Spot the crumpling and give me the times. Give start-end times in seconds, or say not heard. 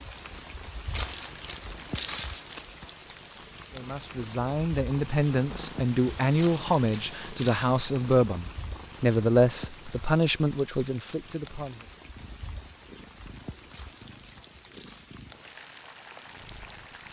0.9-2.6, 6.3-7.8, 13.7-15.2.